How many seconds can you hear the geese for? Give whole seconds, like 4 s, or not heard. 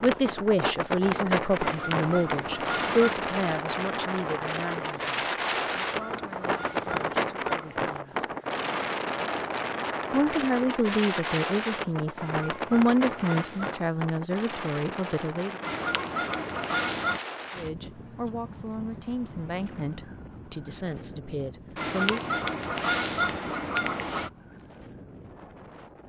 10 s.